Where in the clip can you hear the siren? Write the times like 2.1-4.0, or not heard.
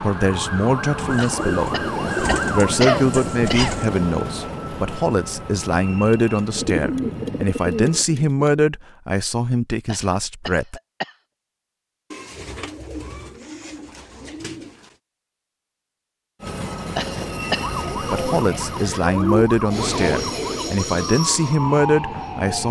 0.0-2.8, 17.6-22.6.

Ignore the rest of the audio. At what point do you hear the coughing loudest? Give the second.
3 s.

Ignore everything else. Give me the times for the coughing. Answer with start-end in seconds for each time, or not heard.
1.1-3.9, 9.8-11.2, 16.9-17.7.